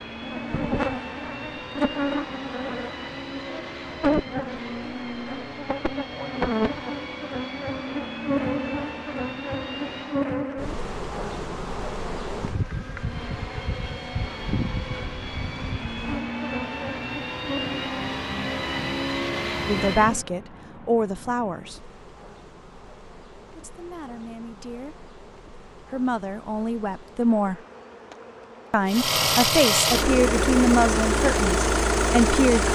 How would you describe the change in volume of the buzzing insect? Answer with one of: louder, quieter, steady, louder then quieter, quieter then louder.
quieter.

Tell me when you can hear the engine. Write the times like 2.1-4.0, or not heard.
0.0-10.3, 12.9-20.2, 28.9-32.7.